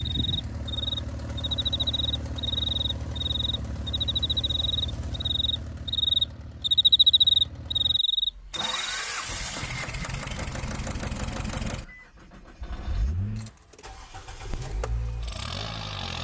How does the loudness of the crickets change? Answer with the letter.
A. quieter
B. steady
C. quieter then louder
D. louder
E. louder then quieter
D.